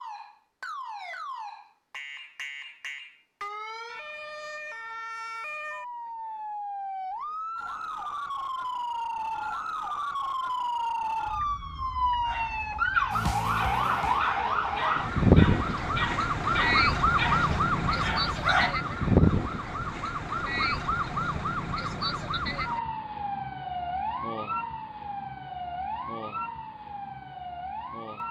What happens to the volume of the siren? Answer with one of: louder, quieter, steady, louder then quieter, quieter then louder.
louder then quieter.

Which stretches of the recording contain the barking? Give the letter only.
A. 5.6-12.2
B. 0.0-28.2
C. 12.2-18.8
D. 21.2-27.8
C.